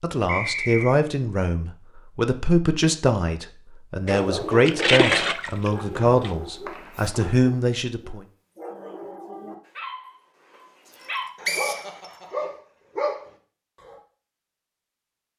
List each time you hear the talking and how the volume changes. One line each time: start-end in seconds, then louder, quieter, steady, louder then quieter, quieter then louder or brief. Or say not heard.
0.0-8.2 steady.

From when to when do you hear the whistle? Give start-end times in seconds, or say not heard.
0.2-0.9, 6.2-7.3, 11.4-12.1.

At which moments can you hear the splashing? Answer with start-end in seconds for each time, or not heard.
4.0-6.3.